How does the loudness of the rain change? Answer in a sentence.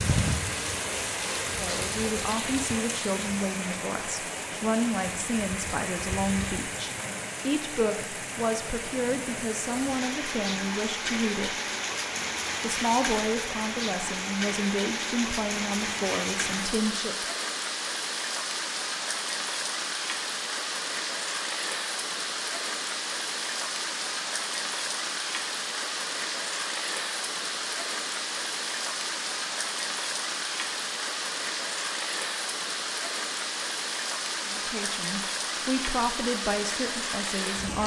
The volume of the rain stays about the same.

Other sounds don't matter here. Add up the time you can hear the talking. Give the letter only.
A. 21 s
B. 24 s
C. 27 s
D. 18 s
D.